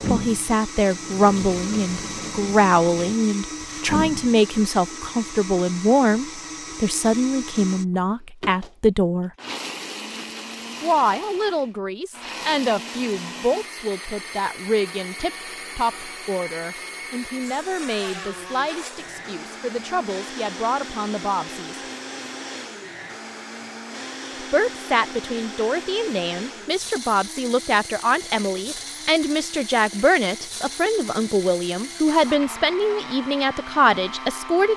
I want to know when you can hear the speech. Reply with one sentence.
The speech can be heard from 0.1 to 9.3 s, from 10.8 to 21.8 s and from 24.4 to 34.7 s.